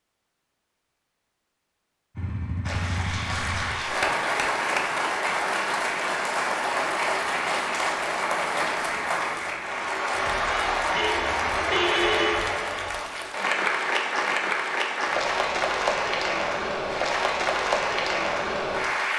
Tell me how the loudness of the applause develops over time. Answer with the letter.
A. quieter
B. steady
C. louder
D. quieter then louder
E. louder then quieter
B.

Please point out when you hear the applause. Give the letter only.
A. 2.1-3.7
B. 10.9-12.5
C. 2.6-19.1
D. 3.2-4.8
C.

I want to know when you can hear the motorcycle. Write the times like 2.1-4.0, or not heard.
2.1-3.7.